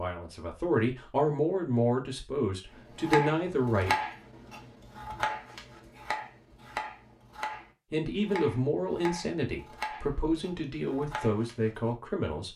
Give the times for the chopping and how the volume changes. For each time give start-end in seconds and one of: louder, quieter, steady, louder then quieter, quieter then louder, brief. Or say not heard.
2.9-11.9 quieter.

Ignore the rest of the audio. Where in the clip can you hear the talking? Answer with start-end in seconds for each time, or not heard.
0.0-4.0, 7.9-12.5.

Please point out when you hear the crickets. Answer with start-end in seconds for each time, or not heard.
not heard.